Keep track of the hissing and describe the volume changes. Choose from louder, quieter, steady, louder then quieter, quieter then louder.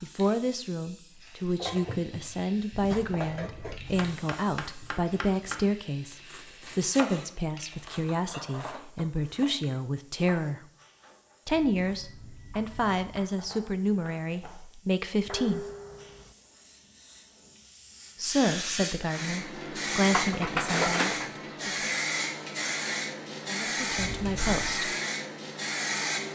quieter then louder.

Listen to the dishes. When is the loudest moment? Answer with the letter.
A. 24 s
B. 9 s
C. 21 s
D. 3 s
C.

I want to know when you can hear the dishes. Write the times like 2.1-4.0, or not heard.
1.6-3.8, 8.1-9.8, 15.2-16.4, 20.1-21.4.